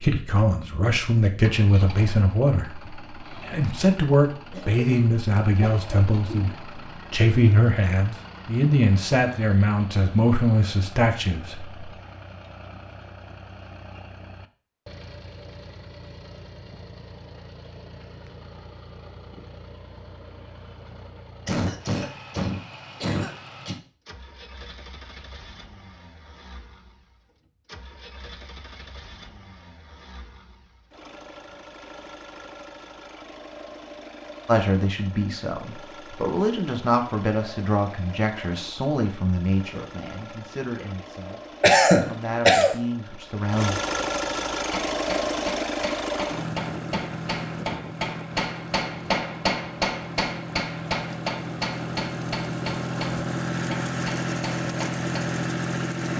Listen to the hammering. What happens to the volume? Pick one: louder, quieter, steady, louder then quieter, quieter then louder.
louder then quieter.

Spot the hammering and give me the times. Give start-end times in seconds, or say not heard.
44.5-55.1.